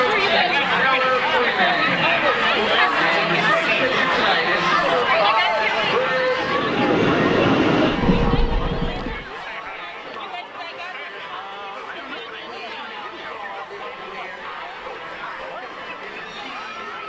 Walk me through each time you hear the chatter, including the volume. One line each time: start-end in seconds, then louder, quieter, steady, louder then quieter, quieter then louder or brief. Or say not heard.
0.0-17.0 quieter.